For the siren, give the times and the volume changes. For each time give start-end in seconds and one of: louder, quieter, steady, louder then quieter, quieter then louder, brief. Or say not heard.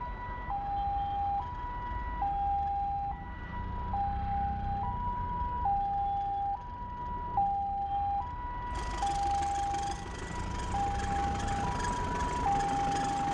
0.0-13.3 steady.